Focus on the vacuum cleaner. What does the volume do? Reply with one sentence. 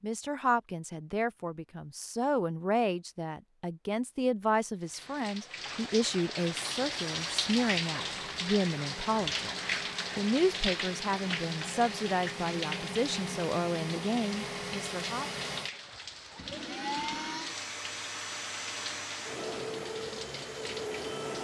The loudness of the vacuum cleaner goes up.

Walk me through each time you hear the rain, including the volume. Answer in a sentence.
The rain can be heard from 4.8 to 21.3 s, getting quieter.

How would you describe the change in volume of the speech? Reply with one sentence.
The volume of the speech stays about the same.